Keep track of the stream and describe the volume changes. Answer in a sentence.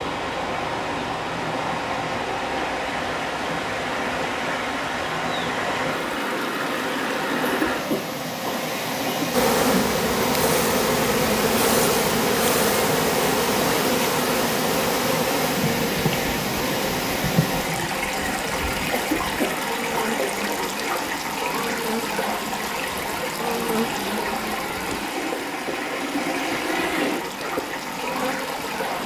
The volume of the stream stays about the same.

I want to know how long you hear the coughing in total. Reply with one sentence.
The coughing can be heard for 3 seconds in total.